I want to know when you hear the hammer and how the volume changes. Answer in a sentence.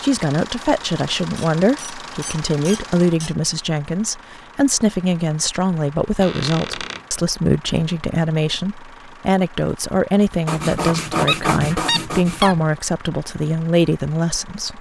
You can't hear the hammer here.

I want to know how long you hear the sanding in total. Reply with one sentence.
You can hear the sanding for 2 seconds altogether.